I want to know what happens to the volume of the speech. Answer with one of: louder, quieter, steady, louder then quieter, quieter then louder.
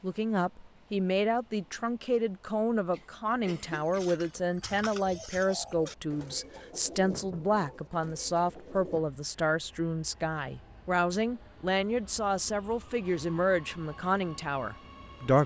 steady.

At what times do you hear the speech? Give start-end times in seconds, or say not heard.
0.0-15.4.